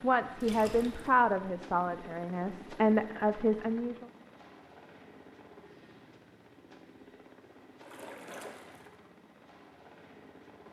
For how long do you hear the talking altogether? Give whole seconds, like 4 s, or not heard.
4 s.